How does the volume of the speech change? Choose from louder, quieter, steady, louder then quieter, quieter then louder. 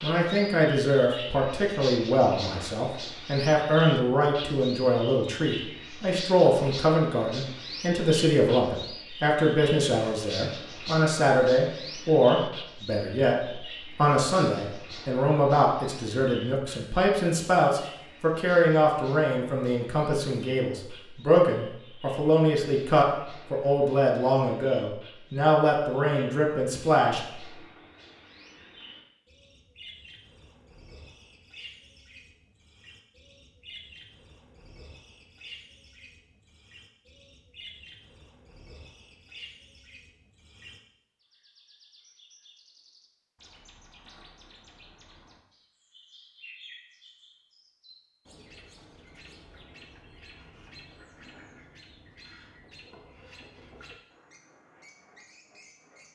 steady.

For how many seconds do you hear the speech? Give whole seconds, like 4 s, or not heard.
27 s.